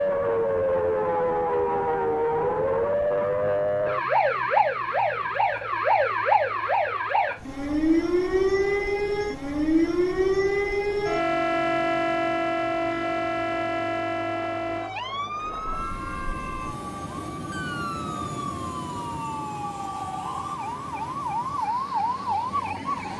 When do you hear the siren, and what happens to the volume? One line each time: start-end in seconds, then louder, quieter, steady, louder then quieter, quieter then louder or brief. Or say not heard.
0.0-23.1 quieter.